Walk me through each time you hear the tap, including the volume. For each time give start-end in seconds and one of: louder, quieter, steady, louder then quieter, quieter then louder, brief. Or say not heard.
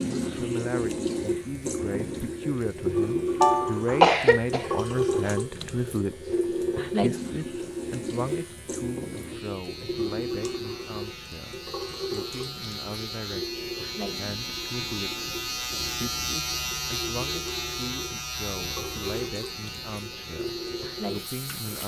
0.0-21.8 quieter.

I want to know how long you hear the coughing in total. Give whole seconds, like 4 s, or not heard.
2 s.